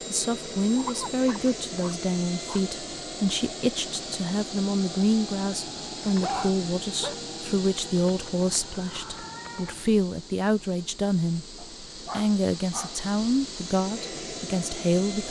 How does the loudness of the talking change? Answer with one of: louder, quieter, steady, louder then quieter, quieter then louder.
steady.